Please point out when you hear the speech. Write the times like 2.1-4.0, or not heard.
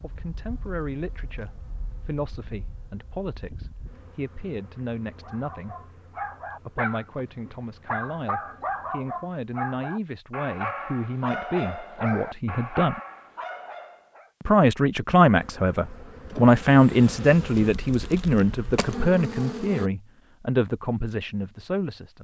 0.0-5.9, 6.7-13.0, 14.4-22.1.